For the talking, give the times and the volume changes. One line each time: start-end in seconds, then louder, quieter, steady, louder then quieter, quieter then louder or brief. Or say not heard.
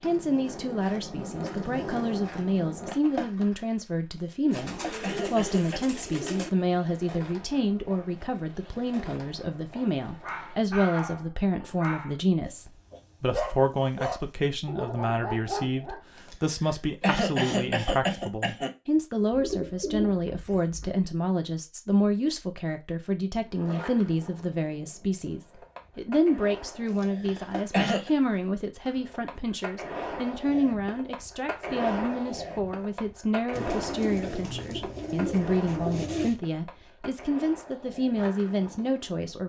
0.0-39.4 steady.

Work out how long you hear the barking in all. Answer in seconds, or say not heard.
6 s.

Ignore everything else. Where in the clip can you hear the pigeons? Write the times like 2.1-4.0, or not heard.
4.5-6.5, 19.3-20.9, 33.5-36.4.